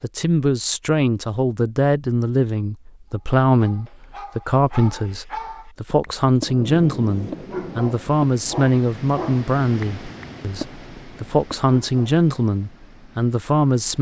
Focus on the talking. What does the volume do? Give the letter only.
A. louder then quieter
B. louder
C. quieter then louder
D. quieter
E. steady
E.